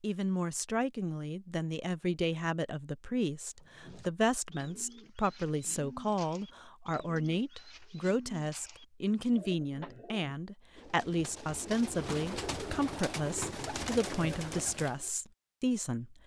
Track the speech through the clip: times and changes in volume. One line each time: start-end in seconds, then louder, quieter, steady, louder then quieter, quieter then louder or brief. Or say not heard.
0.0-16.1 steady.